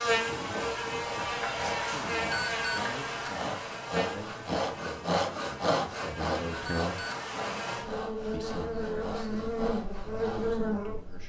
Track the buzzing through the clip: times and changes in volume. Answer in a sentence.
You can hear the buzzing from 0.0 to 11.2 s, getting quieter then louder.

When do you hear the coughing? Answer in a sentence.
The coughing can't be heard in this clip.